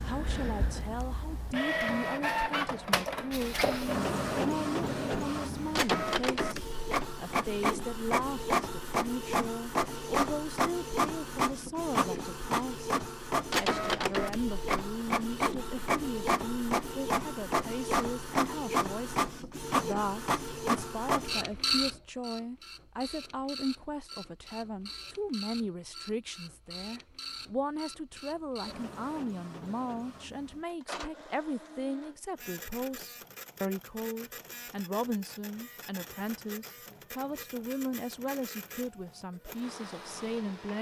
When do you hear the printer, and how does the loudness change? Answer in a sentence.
You can hear the printer from 0.0 to 40.7 s, getting quieter.